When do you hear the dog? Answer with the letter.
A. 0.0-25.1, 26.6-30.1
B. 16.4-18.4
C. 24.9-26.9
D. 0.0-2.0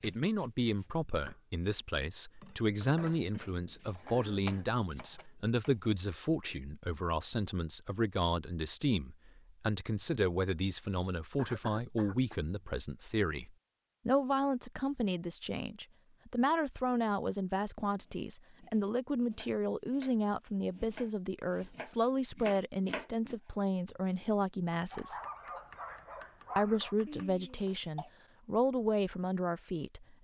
C.